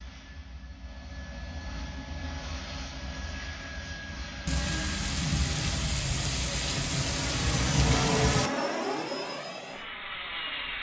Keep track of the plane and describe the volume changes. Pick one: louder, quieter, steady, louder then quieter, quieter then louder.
louder.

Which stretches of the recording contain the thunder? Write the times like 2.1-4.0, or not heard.
4.5-8.5.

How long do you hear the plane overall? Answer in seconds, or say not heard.
11 s.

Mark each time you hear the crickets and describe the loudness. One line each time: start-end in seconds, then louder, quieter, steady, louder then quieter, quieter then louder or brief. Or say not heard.
not heard.